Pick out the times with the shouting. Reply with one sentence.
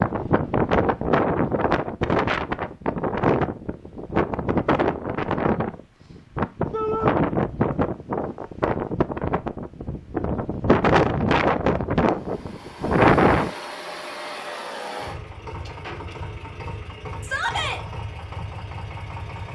You can hear the shouting from 6.7 to 7.2 s and from 17.2 to 17.8 s.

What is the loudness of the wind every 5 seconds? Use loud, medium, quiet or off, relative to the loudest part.
loud, medium, loud, off.